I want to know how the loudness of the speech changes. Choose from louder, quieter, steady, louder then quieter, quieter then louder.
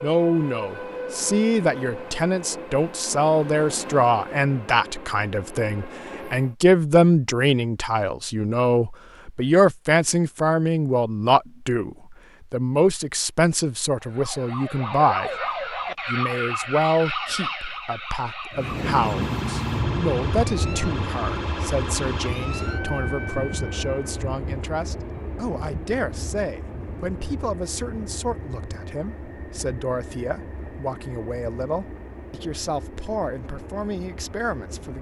quieter.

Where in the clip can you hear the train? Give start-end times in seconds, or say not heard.
0.0-6.5, 18.5-34.9.